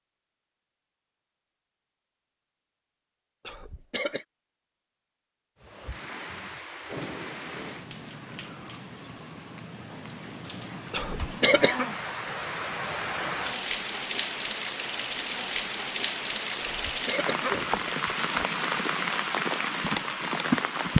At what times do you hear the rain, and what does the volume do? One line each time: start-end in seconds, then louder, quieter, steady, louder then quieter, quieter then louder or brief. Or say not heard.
5.6-20.9 louder.